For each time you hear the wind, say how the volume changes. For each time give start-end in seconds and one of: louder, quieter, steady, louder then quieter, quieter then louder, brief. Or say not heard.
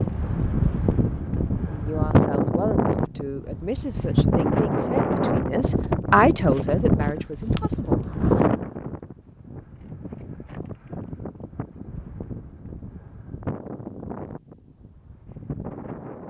0.0-16.2 quieter.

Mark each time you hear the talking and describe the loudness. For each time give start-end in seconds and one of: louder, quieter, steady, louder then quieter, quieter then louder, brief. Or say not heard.
1.7-8.3 louder then quieter.